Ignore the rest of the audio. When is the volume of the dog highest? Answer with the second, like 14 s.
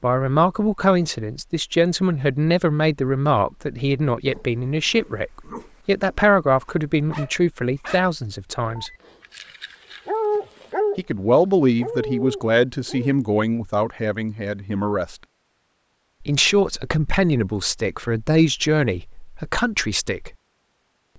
10 s.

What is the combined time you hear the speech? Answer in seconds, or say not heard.
17 s.